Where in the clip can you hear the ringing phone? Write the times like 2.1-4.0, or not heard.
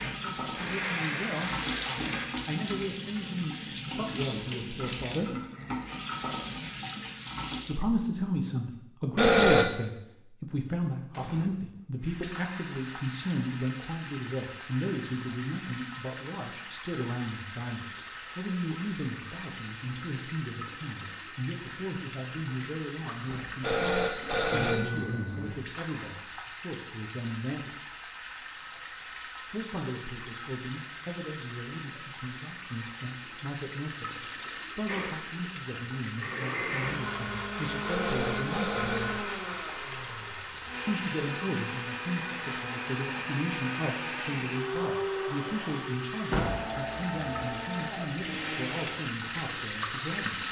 9.2-9.8, 23.6-25.6, 37.9-39.2.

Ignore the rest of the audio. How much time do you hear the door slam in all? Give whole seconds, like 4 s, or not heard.
2 s.